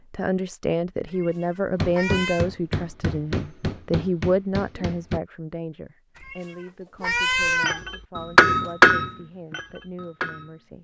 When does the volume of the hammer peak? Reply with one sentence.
The loudest moment of the hammer is at 9 seconds.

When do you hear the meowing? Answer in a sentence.
The meowing can be heard from 1.1 to 2.5 s and from 6.2 to 7.8 s.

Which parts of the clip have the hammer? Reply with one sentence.
You can hear the hammer from 1.8 to 5.2 s and from 7.6 to 10.6 s.